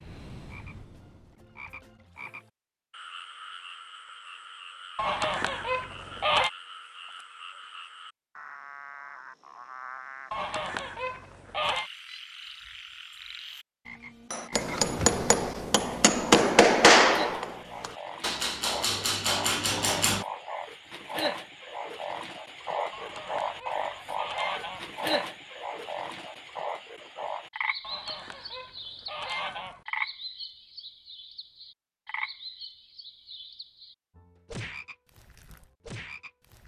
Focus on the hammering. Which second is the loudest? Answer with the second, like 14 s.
17 s.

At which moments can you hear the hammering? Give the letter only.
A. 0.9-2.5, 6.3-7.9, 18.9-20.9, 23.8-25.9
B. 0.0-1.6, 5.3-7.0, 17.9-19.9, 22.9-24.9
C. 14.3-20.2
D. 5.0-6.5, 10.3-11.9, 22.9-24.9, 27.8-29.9
C.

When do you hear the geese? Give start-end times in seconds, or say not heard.
5.0-6.5, 10.3-11.9, 22.9-24.9, 27.8-29.9.